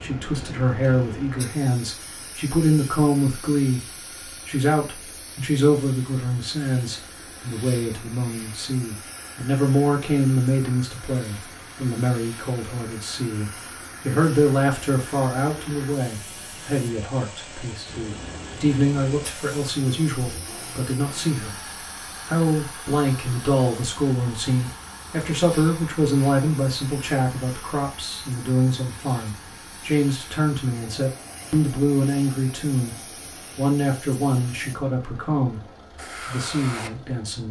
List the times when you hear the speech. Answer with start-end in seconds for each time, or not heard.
0.0-21.6, 22.2-33.0, 33.5-37.4.